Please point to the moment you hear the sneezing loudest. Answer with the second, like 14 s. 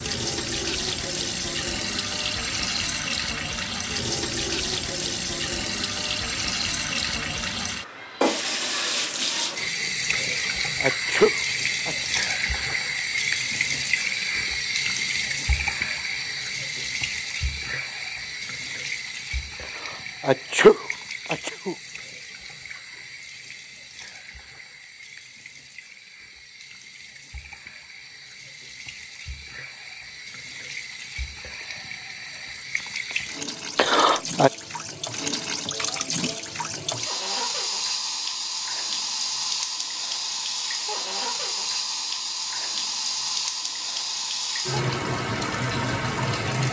21 s.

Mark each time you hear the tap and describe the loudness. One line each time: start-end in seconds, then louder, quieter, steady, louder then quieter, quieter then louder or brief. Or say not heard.
0.0-46.6 quieter then louder.